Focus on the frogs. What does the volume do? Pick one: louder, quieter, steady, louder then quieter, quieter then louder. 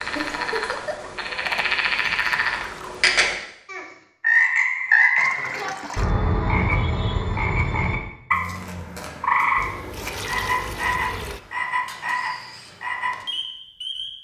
louder then quieter.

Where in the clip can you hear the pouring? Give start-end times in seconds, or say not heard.
1.4-3.0, 5.2-6.1, 9.6-11.4.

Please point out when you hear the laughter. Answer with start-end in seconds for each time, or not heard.
0.1-1.1.